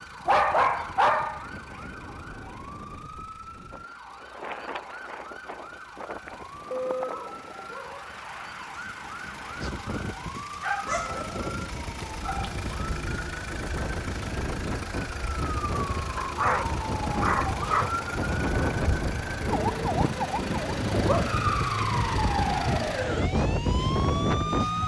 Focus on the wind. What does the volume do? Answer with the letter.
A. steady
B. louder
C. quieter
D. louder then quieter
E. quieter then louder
B.